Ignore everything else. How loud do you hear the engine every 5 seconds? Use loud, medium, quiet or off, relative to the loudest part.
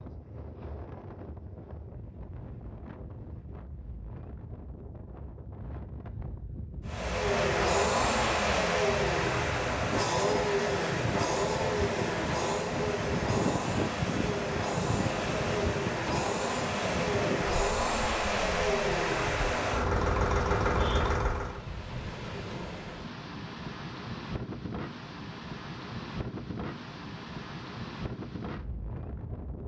off, loud, loud, loud, loud, off.